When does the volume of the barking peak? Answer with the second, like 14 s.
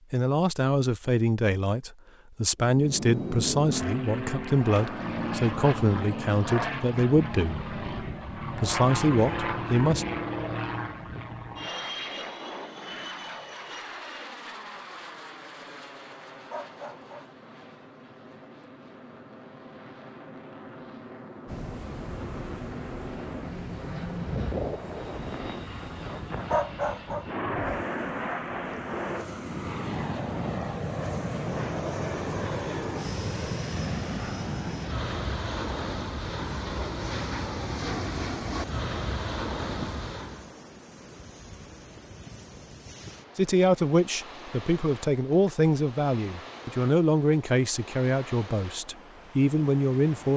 27 s.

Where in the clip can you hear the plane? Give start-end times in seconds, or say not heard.
2.6-40.5.